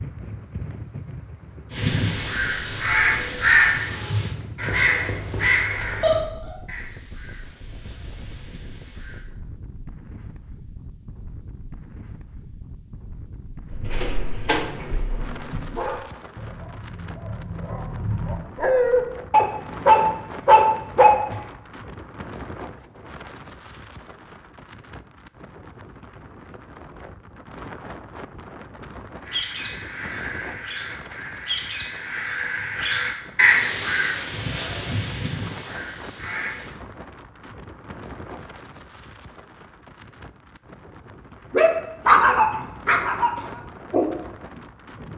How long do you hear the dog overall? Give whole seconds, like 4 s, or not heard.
11 s.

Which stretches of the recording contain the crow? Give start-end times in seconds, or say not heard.
1.7-9.2, 29.2-36.7.